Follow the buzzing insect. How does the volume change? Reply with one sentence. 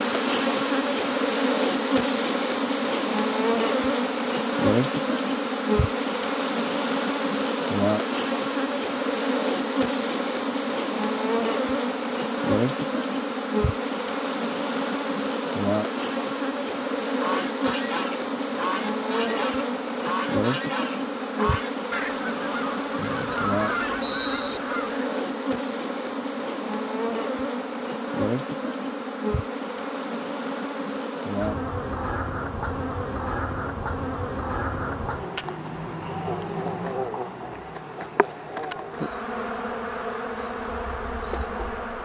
The volume of the buzzing insect goes down.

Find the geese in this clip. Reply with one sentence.
You can hear the geese from 17.1 to 25.0 s.